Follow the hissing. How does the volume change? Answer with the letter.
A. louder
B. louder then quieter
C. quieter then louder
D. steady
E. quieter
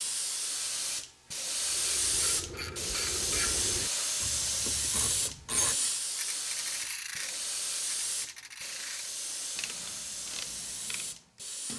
E.